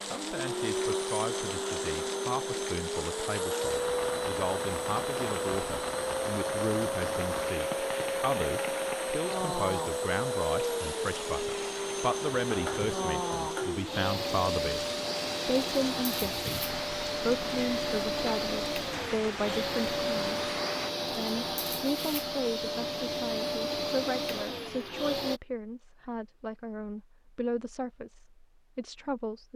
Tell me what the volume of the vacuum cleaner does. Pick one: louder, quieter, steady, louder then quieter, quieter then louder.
steady.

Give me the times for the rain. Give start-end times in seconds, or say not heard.
0.0-20.9.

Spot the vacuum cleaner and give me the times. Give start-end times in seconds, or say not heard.
0.0-25.4.